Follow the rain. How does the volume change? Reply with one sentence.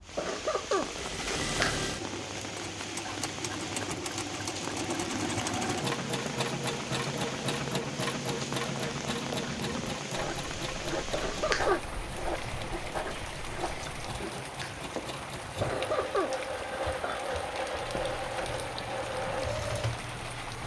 The loudness of the rain stays about the same.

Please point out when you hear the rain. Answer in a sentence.
The rain can be heard from 0.0 to 20.6 s.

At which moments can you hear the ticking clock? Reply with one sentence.
The ticking clock can't be heard in this clip.